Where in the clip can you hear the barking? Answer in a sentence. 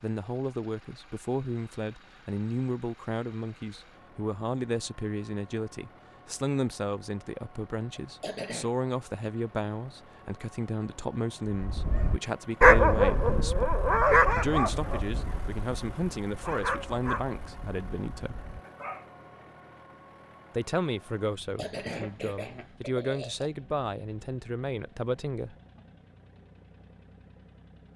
The barking can be heard from 11.6 to 19.1 s.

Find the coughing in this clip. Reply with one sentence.
You can hear the coughing from 8.0 to 8.7 s and from 21.3 to 23.5 s.